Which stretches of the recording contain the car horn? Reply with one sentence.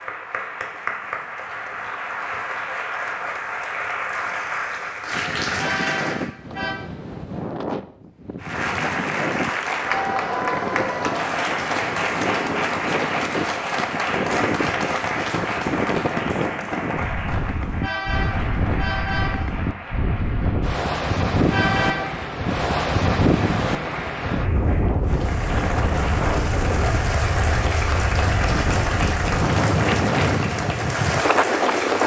The car horn can be heard from 5.5 to 6.8 s, from 17.8 to 19.5 s and from 21.5 to 22.1 s.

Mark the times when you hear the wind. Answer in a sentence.
The wind can be heard from 5.1 to 32.0 s.